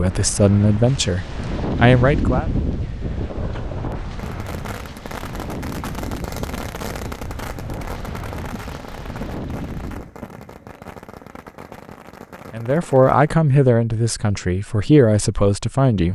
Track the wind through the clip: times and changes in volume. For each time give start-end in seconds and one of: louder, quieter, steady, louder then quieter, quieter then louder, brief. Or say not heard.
0.0-10.1 quieter.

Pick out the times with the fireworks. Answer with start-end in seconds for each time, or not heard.
3.0-13.4.